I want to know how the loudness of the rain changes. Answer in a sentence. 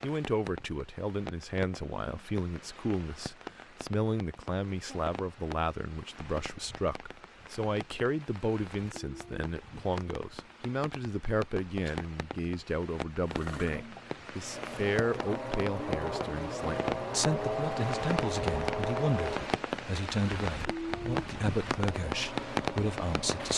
The volume of the rain goes up.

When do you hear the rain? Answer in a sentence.
You can hear the rain from 0.0 to 23.5 s.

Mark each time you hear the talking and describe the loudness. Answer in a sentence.
The talking can be heard from 0.0 to 23.5 s, at a steady volume.